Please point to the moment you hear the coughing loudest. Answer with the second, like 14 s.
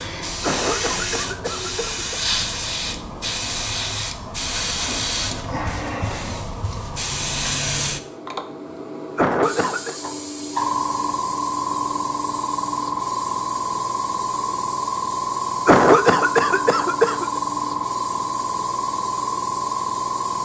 16 s.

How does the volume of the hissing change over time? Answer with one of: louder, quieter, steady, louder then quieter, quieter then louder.
steady.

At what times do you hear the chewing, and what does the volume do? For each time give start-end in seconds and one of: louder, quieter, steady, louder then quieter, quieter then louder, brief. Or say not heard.
not heard.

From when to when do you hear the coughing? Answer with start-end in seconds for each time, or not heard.
0.4-2.2, 9.2-9.9, 15.7-17.4.